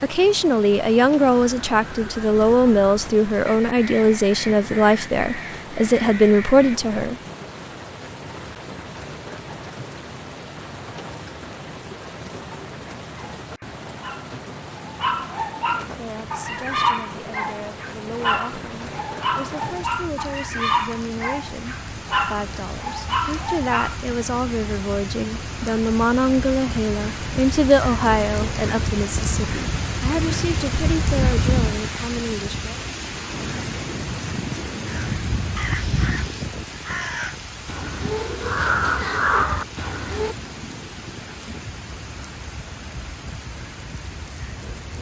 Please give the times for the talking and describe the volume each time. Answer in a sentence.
You can hear the talking from 0.0 to 7.2 s, at a steady volume; and from 15.8 to 32.8 s, getting louder then quieter.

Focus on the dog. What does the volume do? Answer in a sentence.
The volume of the dog stays about the same.